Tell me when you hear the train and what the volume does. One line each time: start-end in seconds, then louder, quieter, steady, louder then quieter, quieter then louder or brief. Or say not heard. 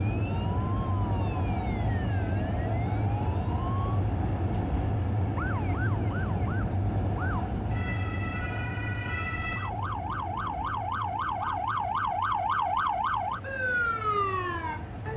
0.0-15.1 quieter.